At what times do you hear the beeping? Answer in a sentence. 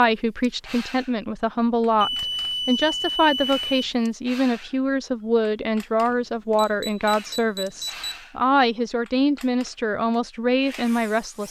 You can hear the beeping from 2.0 to 3.9 s and from 6.1 to 8.2 s.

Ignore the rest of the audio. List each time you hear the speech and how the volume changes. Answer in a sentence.
You can hear the speech from 0.0 to 11.4 s, at a steady volume.